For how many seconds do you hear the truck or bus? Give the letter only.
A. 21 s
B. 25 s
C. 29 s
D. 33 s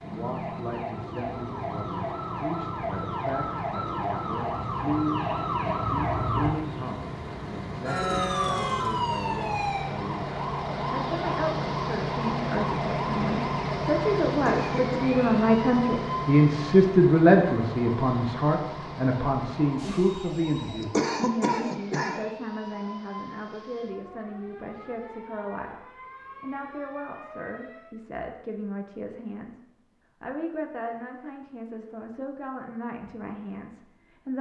A.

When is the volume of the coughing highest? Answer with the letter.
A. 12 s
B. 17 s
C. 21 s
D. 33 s
C.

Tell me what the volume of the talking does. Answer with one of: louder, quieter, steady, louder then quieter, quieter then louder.
louder then quieter.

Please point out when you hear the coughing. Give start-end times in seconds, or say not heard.
14.3-15.0, 20.8-22.2.